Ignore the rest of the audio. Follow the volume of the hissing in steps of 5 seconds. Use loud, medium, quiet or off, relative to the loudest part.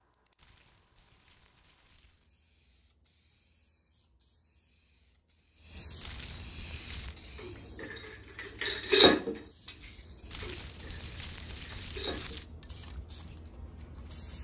quiet, loud, loud.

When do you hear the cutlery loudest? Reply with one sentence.
The loudest moment of the cutlery is at 9 seconds.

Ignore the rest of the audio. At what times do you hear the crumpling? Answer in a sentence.
The crumpling can be heard from 0.3 to 2.3 s, from 6.0 to 7.2 s and from 10.3 to 12.4 s.